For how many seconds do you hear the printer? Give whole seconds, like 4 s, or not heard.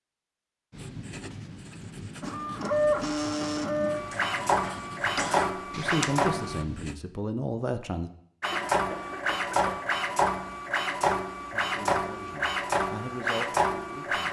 10 s.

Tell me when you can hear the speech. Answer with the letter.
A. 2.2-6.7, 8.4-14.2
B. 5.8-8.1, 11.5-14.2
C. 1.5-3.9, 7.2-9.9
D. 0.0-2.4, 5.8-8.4
B.